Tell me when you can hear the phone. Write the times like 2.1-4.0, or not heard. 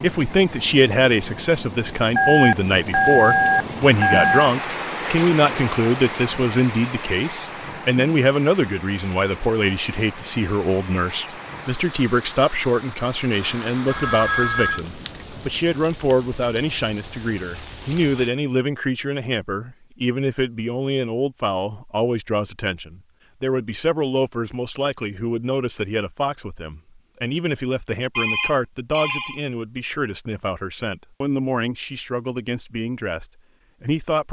2.1-4.5, 13.8-14.8, 28.1-29.4.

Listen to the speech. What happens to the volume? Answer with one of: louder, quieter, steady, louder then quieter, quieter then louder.
quieter.